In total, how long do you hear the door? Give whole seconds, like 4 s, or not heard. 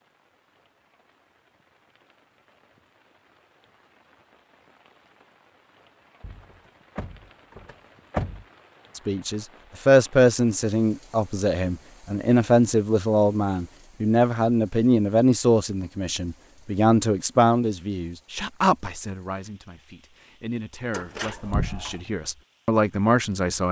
3 s.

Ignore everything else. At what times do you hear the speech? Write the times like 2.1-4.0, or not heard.
8.9-23.6.